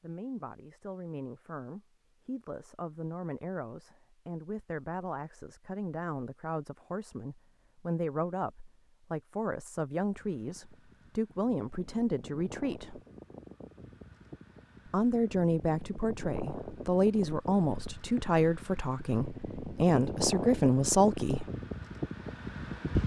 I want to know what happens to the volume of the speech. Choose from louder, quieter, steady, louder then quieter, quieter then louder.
louder.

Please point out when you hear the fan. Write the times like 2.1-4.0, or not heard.
10.2-23.0.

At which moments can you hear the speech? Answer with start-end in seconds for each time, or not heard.
0.0-13.0, 14.8-21.4.